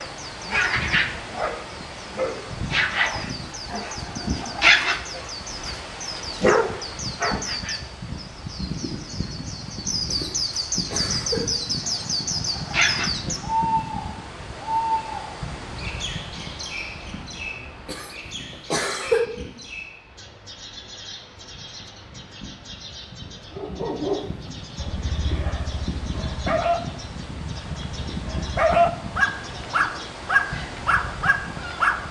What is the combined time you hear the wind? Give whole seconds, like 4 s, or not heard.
32 s.